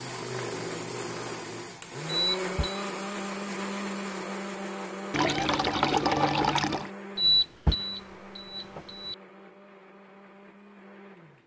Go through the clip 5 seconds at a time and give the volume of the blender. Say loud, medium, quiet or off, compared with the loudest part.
loud, medium, quiet.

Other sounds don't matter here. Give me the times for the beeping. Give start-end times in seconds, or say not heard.
2.1-2.9, 7.2-9.2.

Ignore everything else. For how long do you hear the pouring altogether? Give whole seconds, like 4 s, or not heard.
2 s.